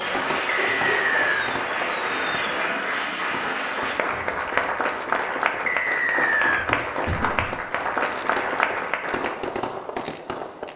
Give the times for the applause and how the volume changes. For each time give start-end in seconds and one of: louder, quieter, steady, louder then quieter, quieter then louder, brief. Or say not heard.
0.0-9.3 steady.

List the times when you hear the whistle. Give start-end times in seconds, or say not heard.
0.5-1.5, 5.7-6.7.